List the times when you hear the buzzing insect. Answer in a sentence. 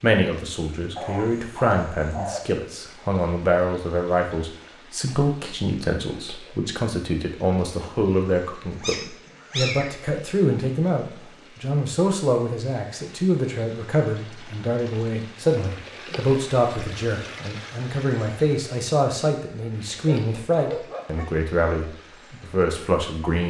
You can't hear the buzzing insect here.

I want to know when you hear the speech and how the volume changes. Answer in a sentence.
The speech can be heard from 0.0 to 23.4 s, at a steady volume.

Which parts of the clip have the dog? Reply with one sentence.
You can hear the dog from 0.9 to 2.5 s, from 8.8 to 9.9 s and from 20.1 to 21.2 s.